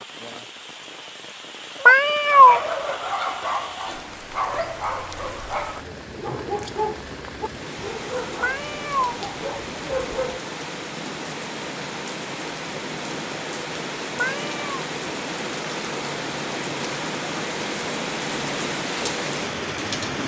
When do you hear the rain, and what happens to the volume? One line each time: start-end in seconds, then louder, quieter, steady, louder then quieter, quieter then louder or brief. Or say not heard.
0.0-20.2 louder.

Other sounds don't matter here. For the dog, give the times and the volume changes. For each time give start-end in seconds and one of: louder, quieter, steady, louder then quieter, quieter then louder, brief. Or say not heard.
1.8-10.4 quieter.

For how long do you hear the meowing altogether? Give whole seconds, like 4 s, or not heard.
2 s.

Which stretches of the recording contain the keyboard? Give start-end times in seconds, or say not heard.
not heard.